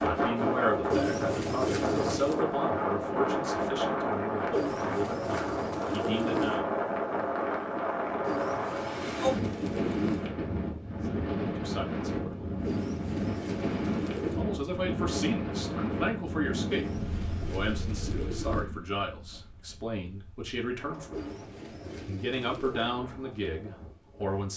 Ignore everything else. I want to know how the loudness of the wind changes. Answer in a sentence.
The loudness of the wind goes down.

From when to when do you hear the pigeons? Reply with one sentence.
You can hear the pigeons from 0.9 to 2.5 s, from 4.5 to 6.6 s, from 8.2 to 10.3 s, from 12.7 to 14.4 s, from 16.6 to 18.7 s and from 21.1 to 23.0 s.